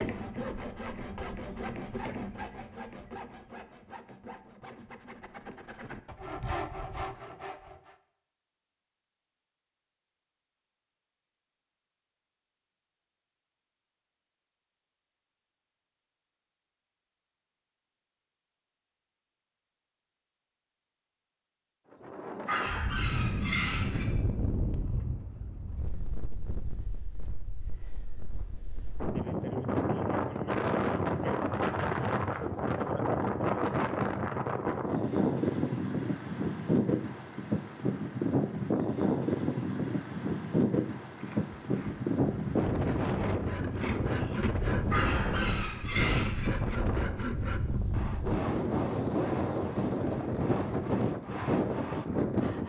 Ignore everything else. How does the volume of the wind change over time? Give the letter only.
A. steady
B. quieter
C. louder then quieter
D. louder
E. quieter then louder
D.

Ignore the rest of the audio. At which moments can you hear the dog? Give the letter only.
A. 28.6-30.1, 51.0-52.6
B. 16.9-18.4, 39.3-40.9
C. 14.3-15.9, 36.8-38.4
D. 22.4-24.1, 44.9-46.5
D.